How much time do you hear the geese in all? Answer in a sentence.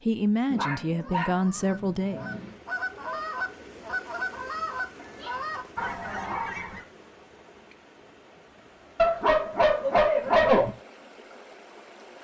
You can hear the geese for 6 seconds altogether.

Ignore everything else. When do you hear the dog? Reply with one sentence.
You can hear the dog from 0.5 to 2.5 s, from 5.0 to 6.7 s and from 8.9 to 10.7 s.